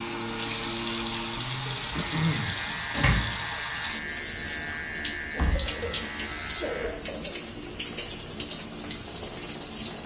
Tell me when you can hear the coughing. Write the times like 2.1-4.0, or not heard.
1.9-2.6, 5.3-7.3.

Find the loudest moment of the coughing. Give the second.
2 s.